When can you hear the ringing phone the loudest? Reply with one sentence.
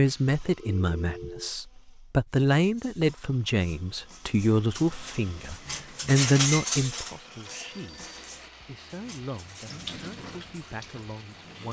The volume of the ringing phone peaks at 1 second.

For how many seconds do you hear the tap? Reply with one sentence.
The tap can be heard for 2 seconds in total.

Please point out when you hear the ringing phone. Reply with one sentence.
You can hear the ringing phone from 0.6 to 1.5 s and from 7.5 to 8.3 s.